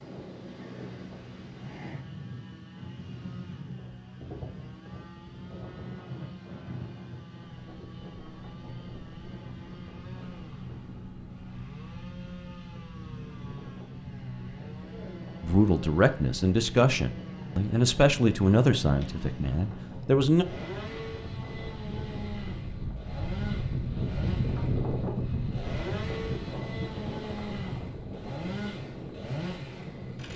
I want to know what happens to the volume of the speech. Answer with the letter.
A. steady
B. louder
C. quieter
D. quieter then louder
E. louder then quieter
C.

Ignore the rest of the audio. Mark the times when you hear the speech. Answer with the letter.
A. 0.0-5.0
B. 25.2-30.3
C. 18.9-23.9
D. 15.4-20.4
D.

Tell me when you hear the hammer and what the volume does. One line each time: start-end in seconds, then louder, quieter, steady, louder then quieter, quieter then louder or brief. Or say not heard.
not heard.